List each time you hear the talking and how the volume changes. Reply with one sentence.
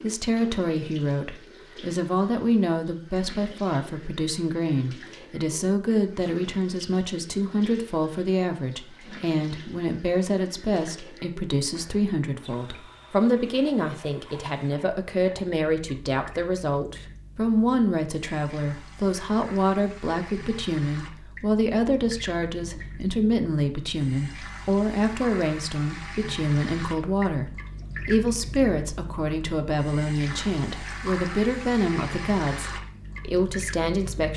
The talking can be heard from 0.0 to 34.3 s, at a steady volume.